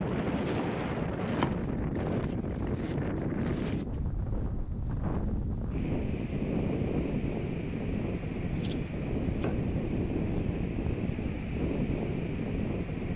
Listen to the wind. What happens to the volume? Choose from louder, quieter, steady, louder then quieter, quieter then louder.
steady.